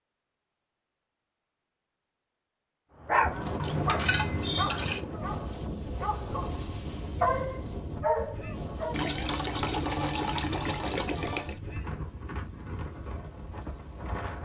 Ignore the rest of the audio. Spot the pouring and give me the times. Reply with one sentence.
You can hear the pouring from 3.5 to 5.0 s and from 8.9 to 11.6 s.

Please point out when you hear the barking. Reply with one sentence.
You can hear the barking from 3.0 to 8.9 s.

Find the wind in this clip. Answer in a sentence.
You can hear the wind from 3.2 to 14.4 s.